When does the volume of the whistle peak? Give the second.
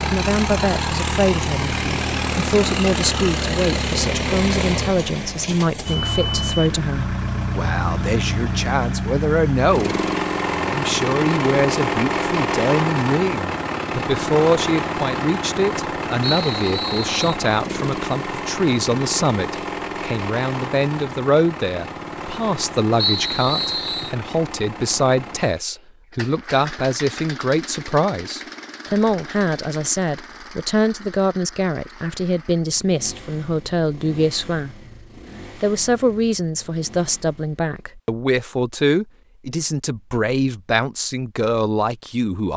23 s.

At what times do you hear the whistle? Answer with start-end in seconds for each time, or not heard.
16.2-17.4, 22.9-24.1.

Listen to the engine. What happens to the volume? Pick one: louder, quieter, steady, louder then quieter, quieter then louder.
quieter.